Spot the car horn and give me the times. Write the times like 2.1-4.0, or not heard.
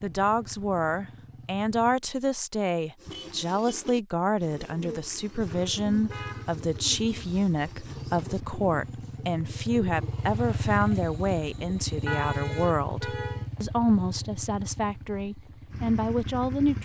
3.0-3.9, 5.9-6.5, 12.1-13.4.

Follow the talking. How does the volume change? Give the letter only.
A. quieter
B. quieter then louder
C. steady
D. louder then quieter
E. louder
C.